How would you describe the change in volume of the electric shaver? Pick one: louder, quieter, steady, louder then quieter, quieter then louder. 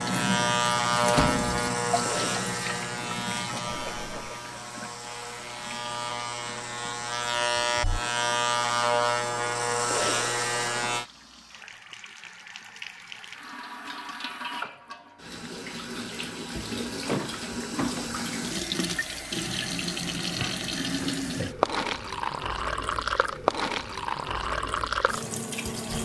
quieter then louder.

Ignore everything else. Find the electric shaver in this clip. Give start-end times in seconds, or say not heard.
0.0-11.1.